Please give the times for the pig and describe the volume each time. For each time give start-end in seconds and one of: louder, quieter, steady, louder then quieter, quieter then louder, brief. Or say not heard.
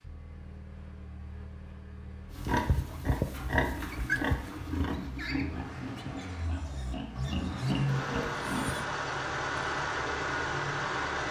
2.3-8.8 quieter then louder.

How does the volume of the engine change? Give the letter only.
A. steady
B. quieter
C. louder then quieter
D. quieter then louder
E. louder
E.